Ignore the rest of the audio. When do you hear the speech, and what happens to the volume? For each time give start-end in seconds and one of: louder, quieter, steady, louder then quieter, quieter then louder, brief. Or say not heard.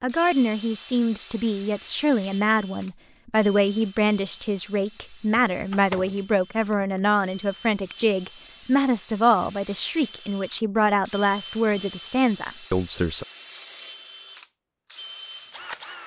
0.0-13.2 steady.